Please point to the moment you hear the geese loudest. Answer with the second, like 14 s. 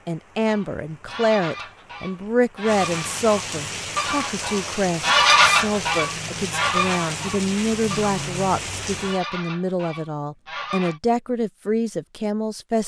5 s.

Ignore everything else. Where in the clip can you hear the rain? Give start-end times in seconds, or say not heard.
0.0-9.2.